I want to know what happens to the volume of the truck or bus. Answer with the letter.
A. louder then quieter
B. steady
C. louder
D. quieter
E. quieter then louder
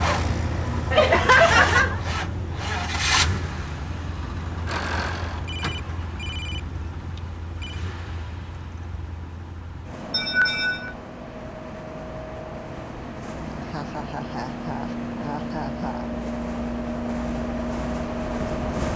E.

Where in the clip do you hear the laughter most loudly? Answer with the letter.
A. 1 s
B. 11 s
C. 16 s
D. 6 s
A.